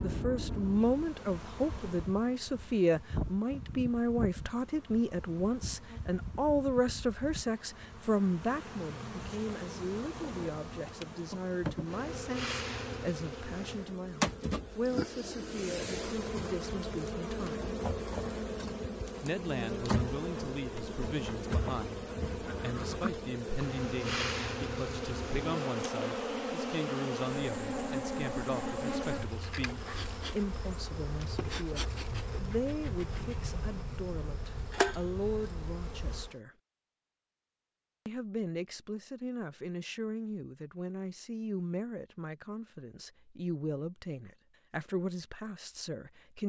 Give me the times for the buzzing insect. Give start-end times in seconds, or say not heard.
0.0-36.4.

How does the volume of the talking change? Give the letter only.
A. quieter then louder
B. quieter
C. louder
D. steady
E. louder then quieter
B.